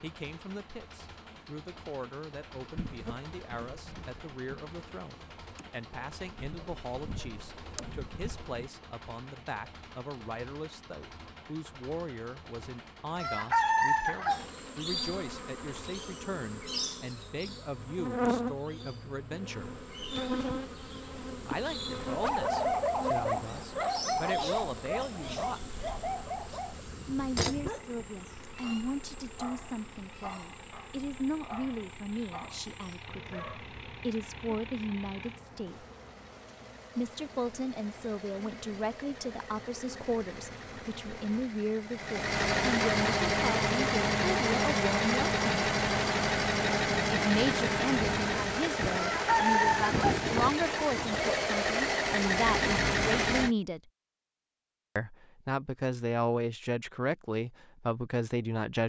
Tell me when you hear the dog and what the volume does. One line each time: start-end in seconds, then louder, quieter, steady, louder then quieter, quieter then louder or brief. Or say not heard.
22.1-33.6 quieter.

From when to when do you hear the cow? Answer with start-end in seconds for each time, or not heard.
not heard.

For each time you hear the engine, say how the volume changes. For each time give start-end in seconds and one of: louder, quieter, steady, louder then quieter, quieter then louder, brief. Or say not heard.
0.0-53.5 louder.